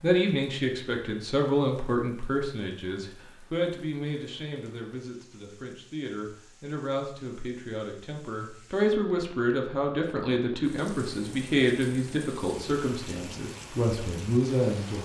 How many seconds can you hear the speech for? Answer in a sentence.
You can hear the speech for 15 seconds altogether.